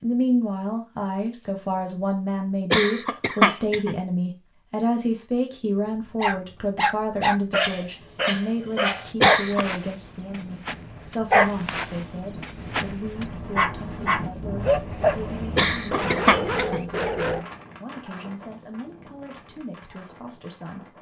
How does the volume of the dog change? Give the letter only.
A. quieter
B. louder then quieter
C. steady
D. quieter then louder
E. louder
C.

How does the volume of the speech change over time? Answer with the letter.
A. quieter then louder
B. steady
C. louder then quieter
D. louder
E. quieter
E.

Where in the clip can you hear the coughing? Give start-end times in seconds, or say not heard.
2.7-4.0, 9.2-9.7, 15.6-16.9.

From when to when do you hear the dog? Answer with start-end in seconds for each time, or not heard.
6.2-17.4.